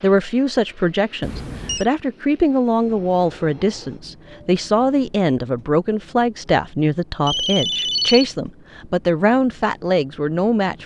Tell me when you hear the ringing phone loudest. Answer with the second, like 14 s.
8 s.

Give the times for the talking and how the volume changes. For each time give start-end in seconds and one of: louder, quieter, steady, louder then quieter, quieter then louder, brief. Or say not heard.
0.0-10.8 steady.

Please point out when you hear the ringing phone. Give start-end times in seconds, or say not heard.
1.2-1.9, 7.2-8.2.